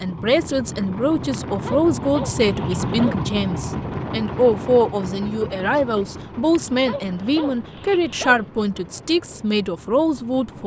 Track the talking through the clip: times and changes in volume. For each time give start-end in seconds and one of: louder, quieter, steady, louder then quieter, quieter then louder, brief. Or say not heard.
0.0-10.6 steady.